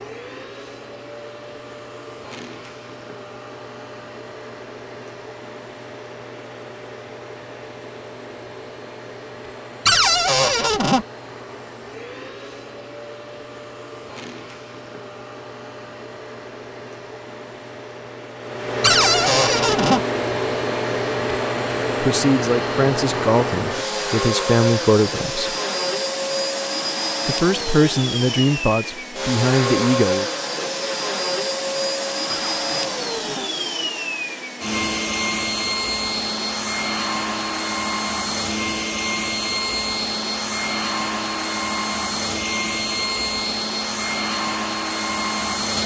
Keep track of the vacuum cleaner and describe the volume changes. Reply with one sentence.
The loudness of the vacuum cleaner goes up.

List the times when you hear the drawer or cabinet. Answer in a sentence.
The drawer or cabinet can be heard from 9.8 to 11.1 s, from 18.8 to 20.0 s and from 32.3 to 33.5 s.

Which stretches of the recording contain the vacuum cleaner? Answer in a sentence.
The vacuum cleaner can be heard from 0.0 to 45.8 s.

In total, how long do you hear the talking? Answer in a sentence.
You can hear the talking for 7 seconds altogether.